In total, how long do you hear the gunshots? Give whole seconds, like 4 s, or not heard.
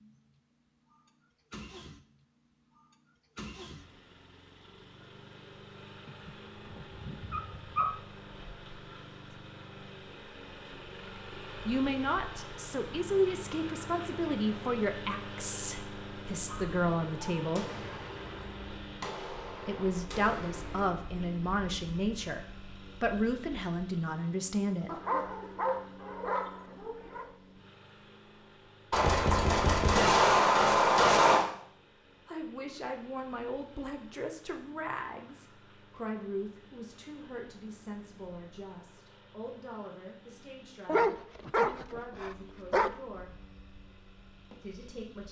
6 s.